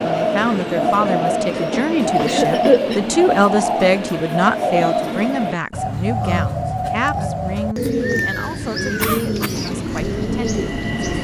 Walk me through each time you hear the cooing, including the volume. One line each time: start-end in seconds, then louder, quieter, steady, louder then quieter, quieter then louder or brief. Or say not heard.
0.0-11.1 steady.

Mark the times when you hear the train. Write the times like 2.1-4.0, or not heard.
0.0-5.6, 9.5-11.1.